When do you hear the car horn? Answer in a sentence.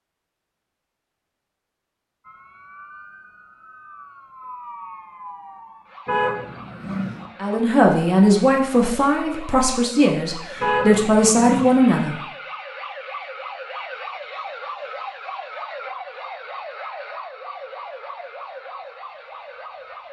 The car horn can be heard from 6.0 to 7.2 s and from 10.6 to 11.8 s.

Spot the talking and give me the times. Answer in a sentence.
The talking can be heard from 7.4 to 12.2 s.